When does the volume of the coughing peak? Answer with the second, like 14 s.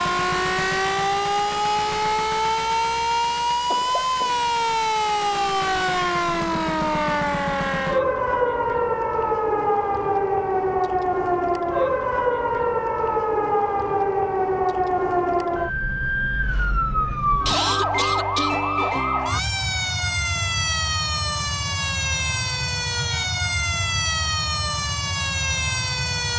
18 s.